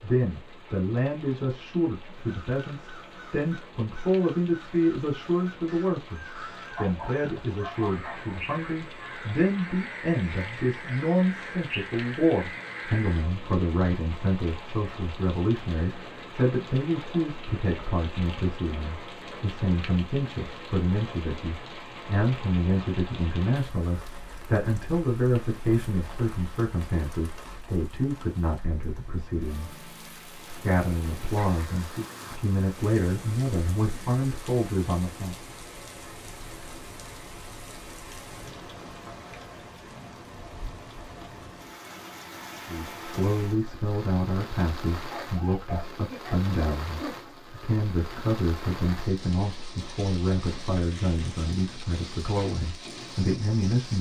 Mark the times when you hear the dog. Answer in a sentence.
The dog can be heard from 6.8 to 8.4 s and from 45.0 to 47.4 s.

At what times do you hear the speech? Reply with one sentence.
You can hear the speech from 0.0 to 29.7 s, from 30.4 to 35.4 s and from 42.6 to 53.9 s.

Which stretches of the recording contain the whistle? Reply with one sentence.
You can't hear the whistle here.